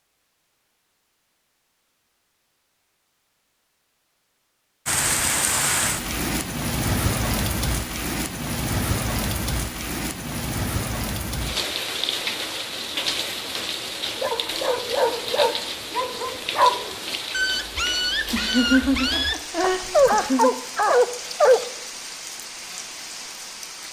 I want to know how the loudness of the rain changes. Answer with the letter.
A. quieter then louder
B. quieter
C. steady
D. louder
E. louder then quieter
B.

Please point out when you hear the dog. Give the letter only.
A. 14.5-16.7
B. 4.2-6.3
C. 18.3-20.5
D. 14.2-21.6
D.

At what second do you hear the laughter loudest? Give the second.
19 s.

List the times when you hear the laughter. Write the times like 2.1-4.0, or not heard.
18.3-20.5.